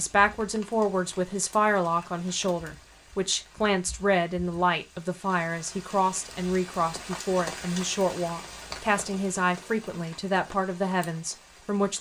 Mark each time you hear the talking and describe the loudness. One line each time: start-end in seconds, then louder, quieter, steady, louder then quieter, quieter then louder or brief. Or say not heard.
0.0-11.9 steady.